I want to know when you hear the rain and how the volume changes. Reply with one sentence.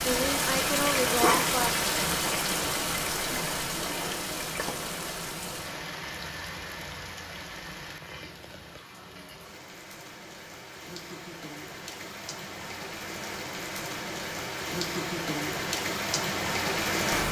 You can hear the rain from 0.0 to 17.2 s, getting quieter then louder.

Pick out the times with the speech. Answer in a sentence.
You can hear the speech from 0.0 to 1.9 s.